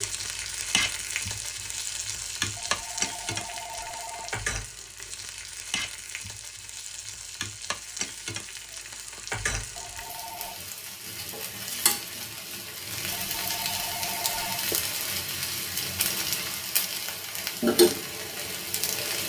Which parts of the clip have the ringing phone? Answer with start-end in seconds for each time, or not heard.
2.5-4.5, 9.8-10.6, 13.1-14.7.